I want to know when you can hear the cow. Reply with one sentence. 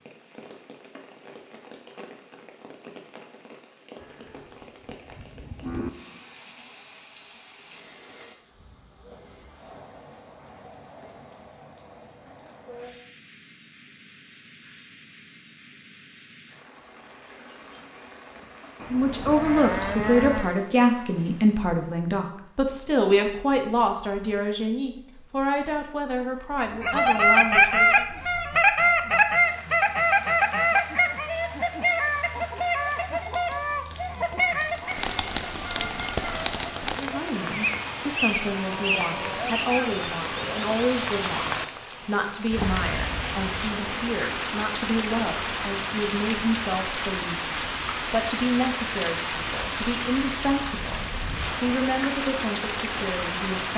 You can hear the cow from 4.0 to 5.9 s, from 18.8 to 20.5 s and from 38.6 to 40.0 s.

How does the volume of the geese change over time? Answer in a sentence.
The loudness of the geese goes down.